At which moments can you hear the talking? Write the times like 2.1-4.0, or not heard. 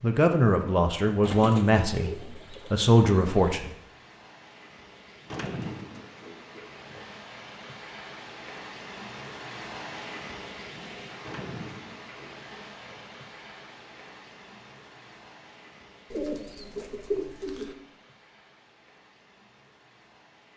0.0-3.8.